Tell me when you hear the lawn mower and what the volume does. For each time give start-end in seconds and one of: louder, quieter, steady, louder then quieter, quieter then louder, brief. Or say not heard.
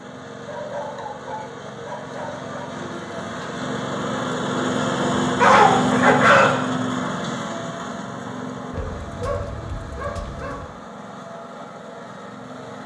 0.0-12.8 louder then quieter.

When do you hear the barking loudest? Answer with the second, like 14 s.
6 s.